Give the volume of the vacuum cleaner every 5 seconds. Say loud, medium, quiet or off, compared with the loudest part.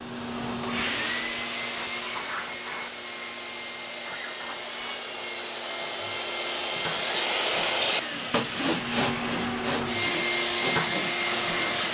medium, medium, loud.